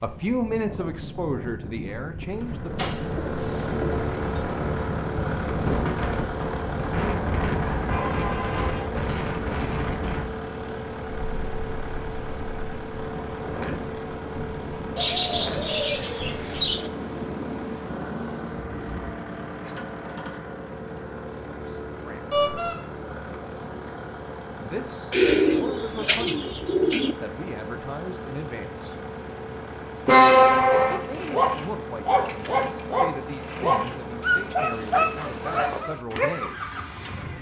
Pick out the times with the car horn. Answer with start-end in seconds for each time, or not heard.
7.6-8.8, 22.3-22.8, 30.1-30.9.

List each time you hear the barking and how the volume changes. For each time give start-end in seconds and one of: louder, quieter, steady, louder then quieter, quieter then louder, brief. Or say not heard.
30.7-36.3 steady.